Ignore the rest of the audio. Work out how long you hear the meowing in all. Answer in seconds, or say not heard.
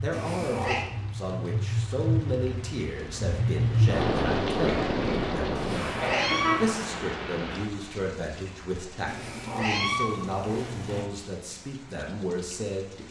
4 s.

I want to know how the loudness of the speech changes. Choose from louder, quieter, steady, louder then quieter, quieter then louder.
steady.